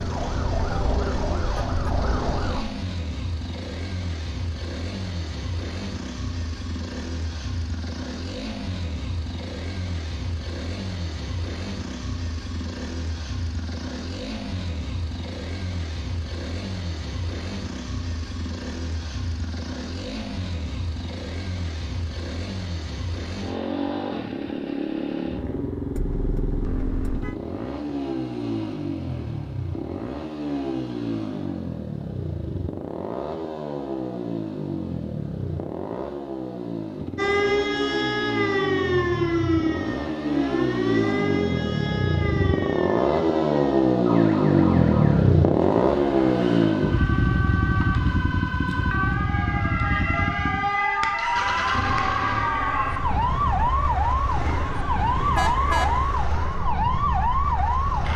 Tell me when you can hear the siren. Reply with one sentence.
You can hear the siren from 0.0 to 2.6 s and from 37.1 to 58.1 s.